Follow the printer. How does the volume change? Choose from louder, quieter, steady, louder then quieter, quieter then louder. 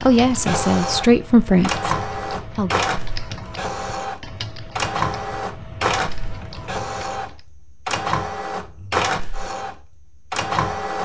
steady.